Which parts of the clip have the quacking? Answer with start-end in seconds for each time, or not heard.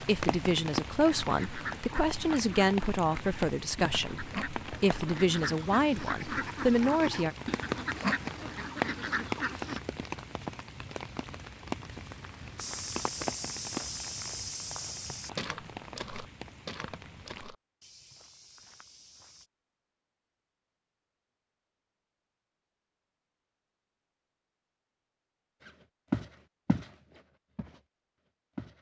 1.1-9.8.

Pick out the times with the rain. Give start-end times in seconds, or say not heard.
0.0-17.4.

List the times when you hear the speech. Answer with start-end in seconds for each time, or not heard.
0.0-7.3.